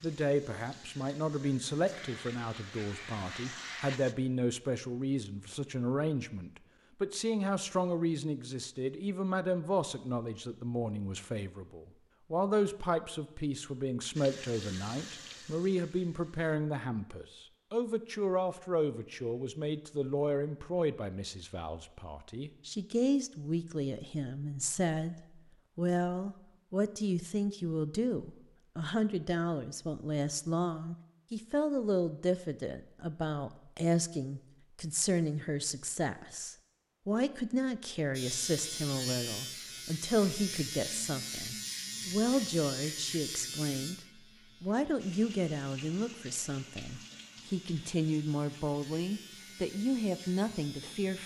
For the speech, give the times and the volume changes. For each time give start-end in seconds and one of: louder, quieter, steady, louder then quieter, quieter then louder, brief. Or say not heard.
0.0-25.1 steady
25.8-51.2 steady.